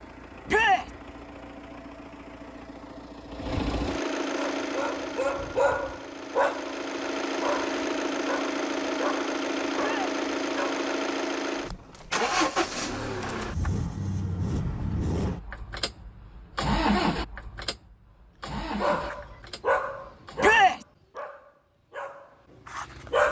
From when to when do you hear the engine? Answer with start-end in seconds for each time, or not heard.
0.0-20.5.